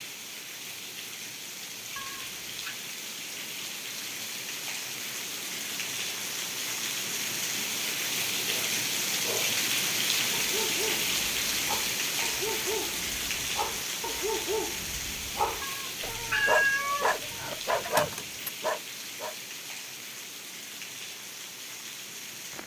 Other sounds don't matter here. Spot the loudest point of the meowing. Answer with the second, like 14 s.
17 s.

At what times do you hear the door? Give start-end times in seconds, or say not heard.
not heard.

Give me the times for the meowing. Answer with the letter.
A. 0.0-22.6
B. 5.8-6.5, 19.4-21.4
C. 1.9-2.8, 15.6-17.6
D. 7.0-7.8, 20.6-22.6
C.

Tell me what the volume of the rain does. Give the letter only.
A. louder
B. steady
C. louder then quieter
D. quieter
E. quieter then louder
C.